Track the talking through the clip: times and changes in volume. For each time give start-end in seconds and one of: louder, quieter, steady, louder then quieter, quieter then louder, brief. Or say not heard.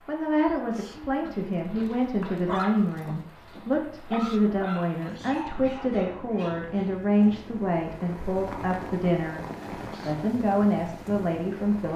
0.1-11.9 steady.